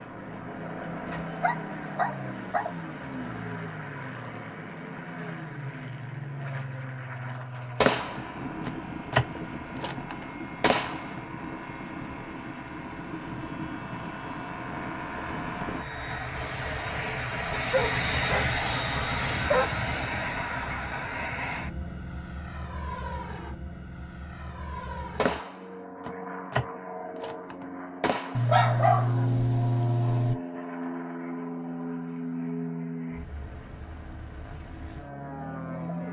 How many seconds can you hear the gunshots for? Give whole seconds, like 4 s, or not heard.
7 s.